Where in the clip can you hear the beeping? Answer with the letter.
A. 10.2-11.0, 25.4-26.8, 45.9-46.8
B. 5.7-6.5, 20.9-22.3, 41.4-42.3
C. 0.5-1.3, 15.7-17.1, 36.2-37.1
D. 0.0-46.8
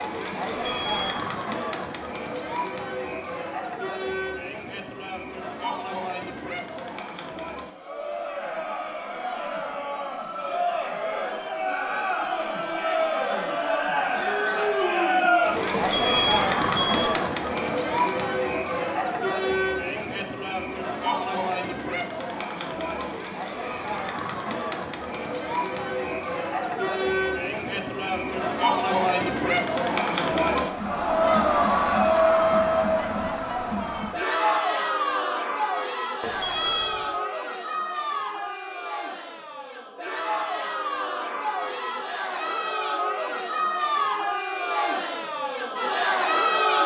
C.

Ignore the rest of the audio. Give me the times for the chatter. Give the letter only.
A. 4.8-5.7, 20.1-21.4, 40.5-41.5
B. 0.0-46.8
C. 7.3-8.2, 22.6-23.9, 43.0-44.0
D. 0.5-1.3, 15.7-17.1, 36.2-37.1
B.